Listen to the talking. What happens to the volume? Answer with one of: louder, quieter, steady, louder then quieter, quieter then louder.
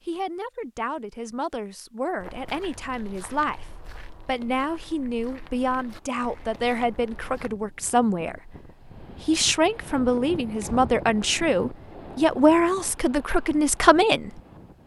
louder.